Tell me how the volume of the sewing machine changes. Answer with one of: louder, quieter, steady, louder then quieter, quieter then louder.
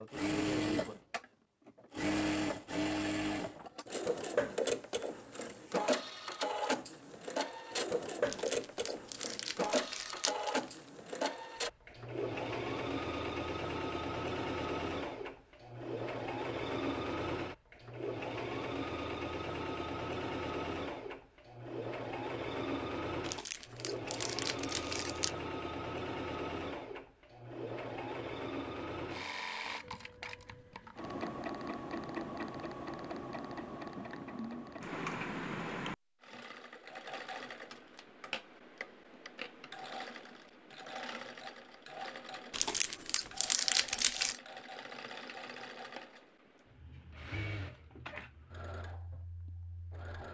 quieter.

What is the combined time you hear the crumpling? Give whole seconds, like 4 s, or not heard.
7 s.